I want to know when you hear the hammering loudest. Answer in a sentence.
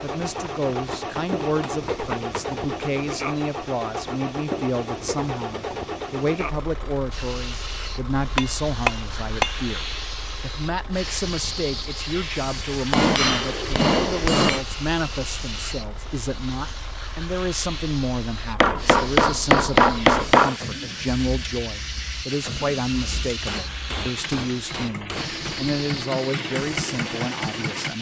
The loudest moment of the hammering is at 20 seconds.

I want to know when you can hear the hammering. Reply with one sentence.
The hammering can be heard from 0.2 to 2.4 s, from 8.2 to 9.6 s, from 12.9 to 14.7 s, from 18.6 to 20.6 s and from 23.4 to 25.6 s.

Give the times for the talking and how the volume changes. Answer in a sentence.
You can hear the talking from 0.0 to 27.9 s, at a steady volume.